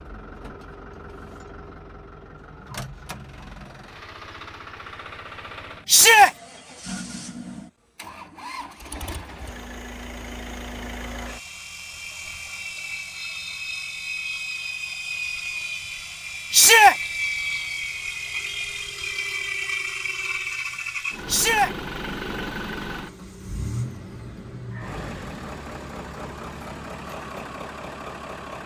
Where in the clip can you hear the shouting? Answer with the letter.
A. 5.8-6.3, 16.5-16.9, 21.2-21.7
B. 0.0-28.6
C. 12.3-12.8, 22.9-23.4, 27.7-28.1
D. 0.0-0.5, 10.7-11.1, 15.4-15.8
A.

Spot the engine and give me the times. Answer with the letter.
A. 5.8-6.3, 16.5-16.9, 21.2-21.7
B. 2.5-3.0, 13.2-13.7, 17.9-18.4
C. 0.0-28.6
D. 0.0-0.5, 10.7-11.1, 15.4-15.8
C.